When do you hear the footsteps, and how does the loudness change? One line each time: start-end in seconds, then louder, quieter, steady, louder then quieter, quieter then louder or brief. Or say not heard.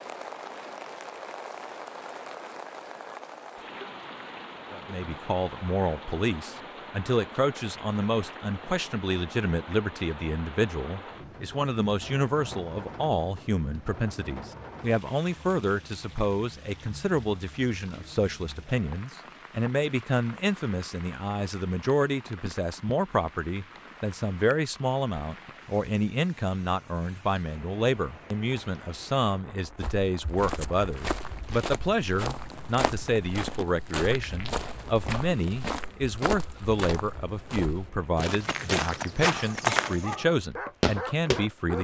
29.8-40.1 louder
40.8-41.4 brief.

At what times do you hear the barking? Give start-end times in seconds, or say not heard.
39.5-41.7.